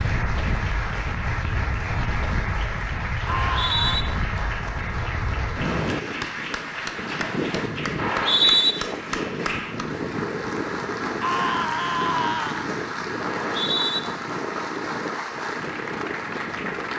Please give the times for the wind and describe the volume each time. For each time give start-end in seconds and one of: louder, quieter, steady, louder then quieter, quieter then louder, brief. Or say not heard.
0.0-16.9 steady.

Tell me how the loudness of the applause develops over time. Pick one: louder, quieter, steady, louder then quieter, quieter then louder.
steady.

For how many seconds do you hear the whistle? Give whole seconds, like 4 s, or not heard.
2 s.